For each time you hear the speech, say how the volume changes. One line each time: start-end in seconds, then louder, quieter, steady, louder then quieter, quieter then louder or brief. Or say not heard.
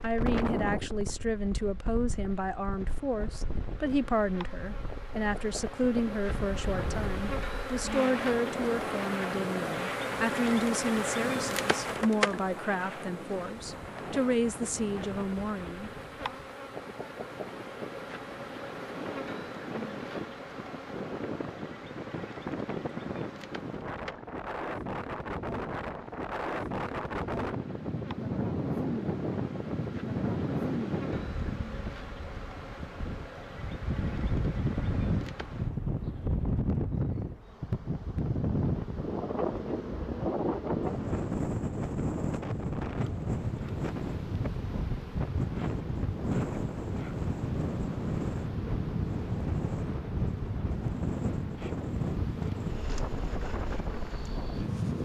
0.0-15.9 steady.